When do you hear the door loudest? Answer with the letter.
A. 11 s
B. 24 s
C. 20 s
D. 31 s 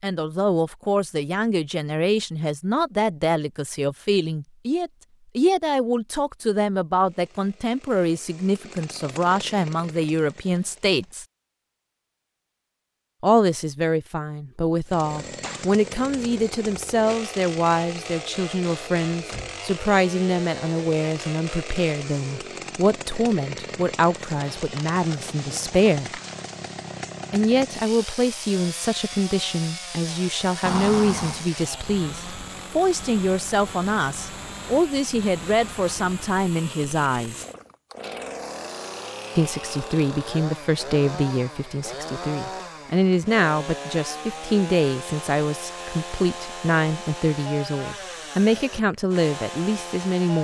D.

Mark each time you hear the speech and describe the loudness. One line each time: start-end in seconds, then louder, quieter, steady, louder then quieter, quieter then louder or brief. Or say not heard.
0.0-11.2 steady
13.2-26.2 steady
27.3-37.5 steady
39.4-50.4 steady.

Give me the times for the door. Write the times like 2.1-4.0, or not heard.
19.1-19.6, 30.6-31.5.